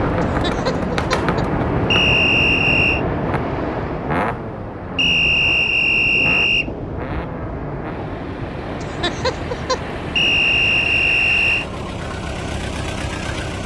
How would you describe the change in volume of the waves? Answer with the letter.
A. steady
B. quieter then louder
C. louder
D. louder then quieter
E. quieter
E.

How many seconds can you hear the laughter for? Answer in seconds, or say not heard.
2 s.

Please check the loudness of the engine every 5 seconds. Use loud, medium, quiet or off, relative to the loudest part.
loud, medium, loud.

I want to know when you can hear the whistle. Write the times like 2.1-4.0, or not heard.
1.9-3.0, 5.0-6.7, 10.2-11.7.